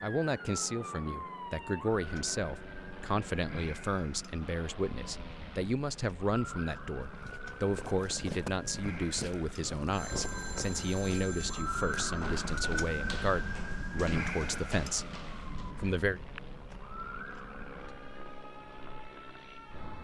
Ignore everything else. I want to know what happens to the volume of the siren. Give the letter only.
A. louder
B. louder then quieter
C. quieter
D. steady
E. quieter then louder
B.